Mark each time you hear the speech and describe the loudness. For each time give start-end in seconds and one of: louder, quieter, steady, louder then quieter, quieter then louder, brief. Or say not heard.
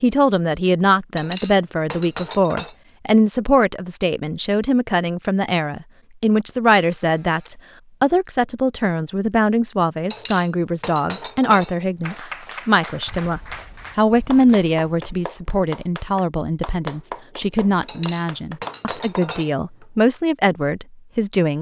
0.0-21.5 steady.